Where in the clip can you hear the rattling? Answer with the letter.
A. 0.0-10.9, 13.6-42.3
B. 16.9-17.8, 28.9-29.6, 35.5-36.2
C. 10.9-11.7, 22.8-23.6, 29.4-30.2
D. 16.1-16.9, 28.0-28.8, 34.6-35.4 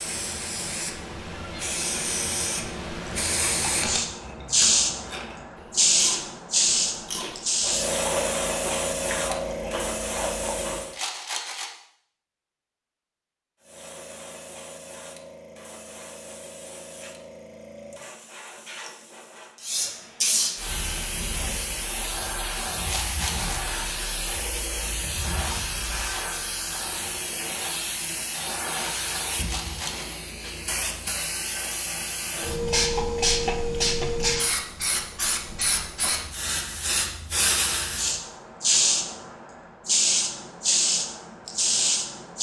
C.